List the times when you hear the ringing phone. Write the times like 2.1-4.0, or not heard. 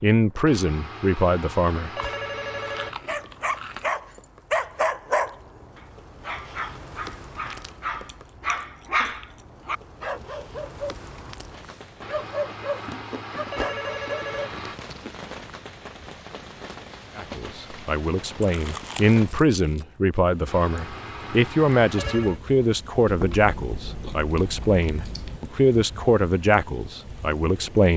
0.5-3.0, 12.0-14.8, 20.4-22.4.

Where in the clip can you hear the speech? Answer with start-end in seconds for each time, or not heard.
0.0-1.9, 17.1-27.9.